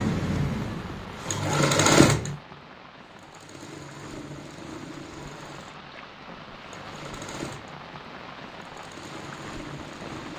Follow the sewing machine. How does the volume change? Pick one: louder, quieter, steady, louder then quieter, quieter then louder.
quieter.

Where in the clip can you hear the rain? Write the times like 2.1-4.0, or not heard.
0.2-10.3.